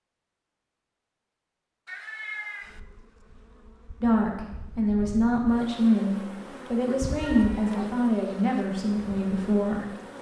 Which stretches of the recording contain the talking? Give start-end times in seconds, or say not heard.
4.0-9.9.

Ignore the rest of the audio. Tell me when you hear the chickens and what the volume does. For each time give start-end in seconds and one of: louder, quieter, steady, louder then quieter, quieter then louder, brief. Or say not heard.
not heard.